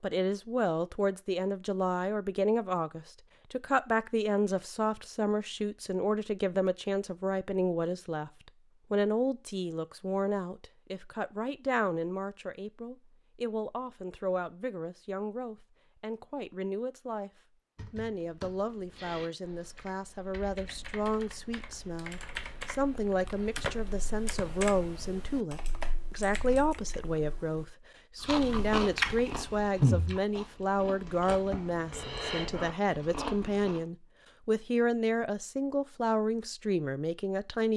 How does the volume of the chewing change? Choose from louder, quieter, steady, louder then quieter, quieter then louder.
quieter then louder.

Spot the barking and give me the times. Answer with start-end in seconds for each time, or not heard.
not heard.